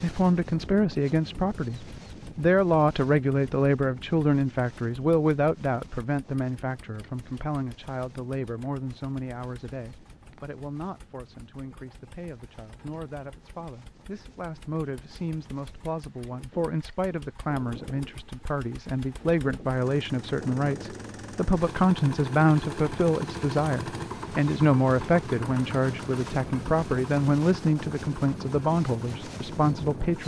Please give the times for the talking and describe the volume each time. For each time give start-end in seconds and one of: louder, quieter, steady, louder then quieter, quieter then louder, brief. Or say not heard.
0.0-30.2 quieter then louder.